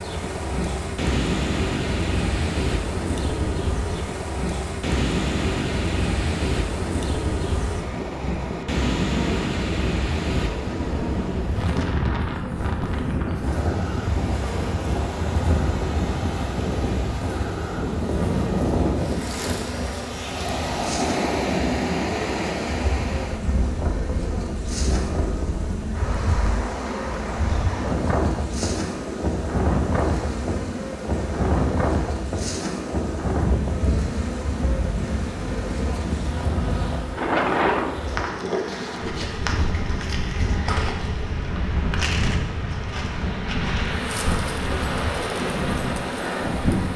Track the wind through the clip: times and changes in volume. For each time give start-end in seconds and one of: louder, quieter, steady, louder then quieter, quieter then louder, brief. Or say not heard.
0.0-46.9 steady.